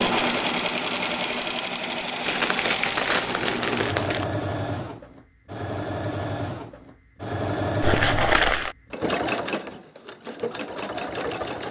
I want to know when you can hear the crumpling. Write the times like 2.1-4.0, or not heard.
2.2-4.2, 7.8-8.8.